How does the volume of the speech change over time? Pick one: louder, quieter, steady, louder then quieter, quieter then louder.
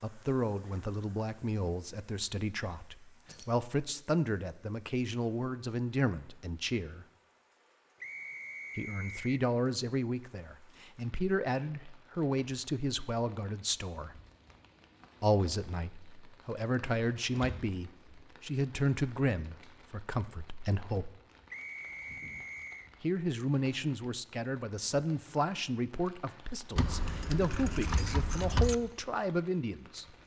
steady.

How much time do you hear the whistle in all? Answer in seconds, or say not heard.
3 s.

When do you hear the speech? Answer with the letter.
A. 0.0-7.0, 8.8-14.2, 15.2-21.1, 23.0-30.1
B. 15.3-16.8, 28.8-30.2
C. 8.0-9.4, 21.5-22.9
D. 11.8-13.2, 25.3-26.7
A.